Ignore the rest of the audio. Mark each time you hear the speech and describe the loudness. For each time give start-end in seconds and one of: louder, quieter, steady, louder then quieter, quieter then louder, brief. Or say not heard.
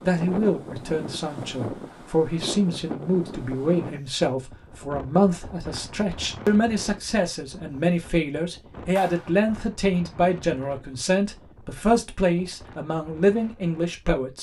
0.0-14.3 steady.